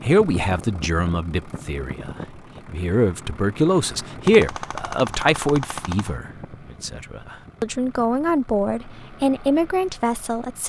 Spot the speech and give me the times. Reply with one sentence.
The speech can be heard from 0.0 to 10.6 s.